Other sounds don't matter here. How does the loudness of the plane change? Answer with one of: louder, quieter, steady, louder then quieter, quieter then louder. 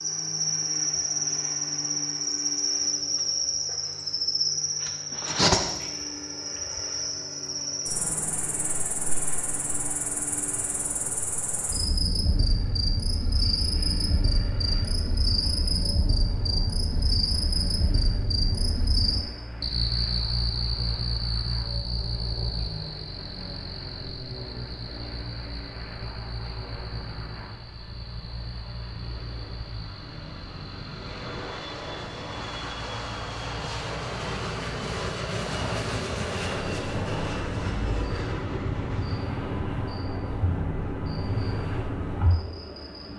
louder.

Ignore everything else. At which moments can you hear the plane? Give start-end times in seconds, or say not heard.
0.0-43.1.